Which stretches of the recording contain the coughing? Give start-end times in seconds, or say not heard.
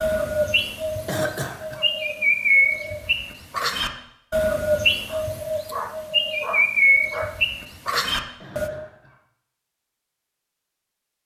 1.1-1.9, 8.3-9.2.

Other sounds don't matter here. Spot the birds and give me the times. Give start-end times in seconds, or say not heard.
0.0-8.7.